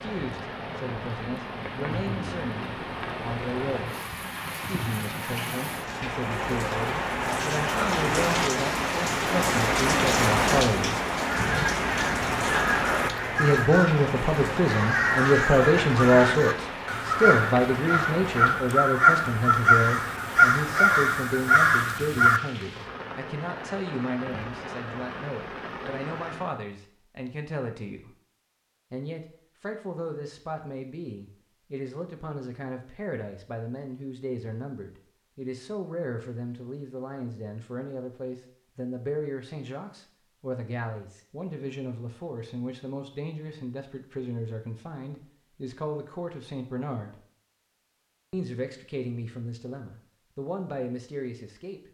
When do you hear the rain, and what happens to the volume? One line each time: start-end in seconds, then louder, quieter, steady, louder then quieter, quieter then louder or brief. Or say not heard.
0.0-26.6 louder then quieter.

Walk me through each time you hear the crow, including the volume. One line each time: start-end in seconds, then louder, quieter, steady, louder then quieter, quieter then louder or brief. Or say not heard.
11.2-22.4 louder.